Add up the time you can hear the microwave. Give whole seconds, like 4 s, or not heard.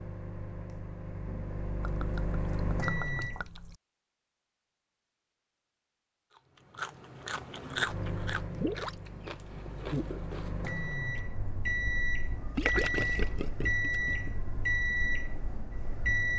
12 s.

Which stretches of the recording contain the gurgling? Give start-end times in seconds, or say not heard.
1.8-3.8, 8.5-9.1, 12.6-14.3.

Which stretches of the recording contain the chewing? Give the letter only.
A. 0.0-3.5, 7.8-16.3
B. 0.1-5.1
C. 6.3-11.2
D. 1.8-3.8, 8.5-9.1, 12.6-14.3
C.